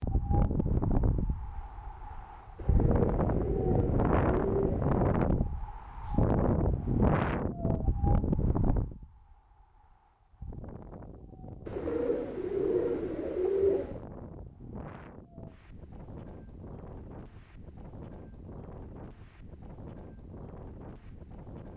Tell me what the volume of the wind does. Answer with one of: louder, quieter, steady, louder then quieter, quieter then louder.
quieter.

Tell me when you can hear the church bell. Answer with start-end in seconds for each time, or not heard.
not heard.